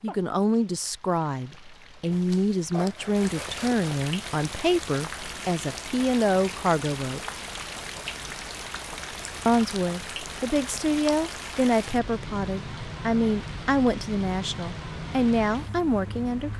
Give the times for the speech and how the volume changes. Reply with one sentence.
You can hear the speech from 0.0 to 7.2 s, at a steady volume; and from 9.4 to 16.5 s, at a steady volume.